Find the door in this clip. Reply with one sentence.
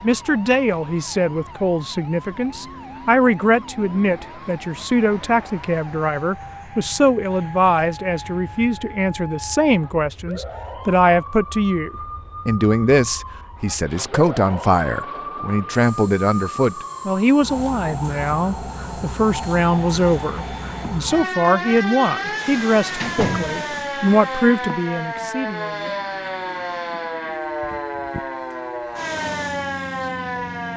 You can hear the door from 22.5 to 23.6 s.